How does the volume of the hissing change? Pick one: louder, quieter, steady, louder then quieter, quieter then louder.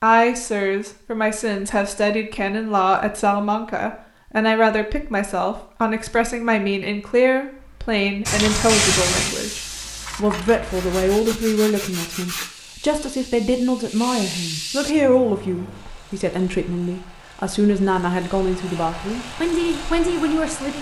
quieter then louder.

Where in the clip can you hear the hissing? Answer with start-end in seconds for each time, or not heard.
8.2-14.9.